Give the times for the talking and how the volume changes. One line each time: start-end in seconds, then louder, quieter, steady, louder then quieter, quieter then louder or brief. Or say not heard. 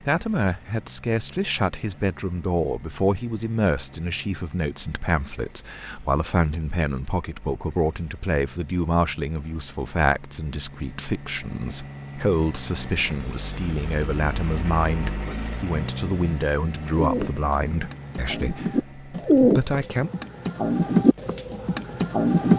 0.1-20.1 steady.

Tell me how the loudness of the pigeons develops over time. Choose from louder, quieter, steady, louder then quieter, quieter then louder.
louder then quieter.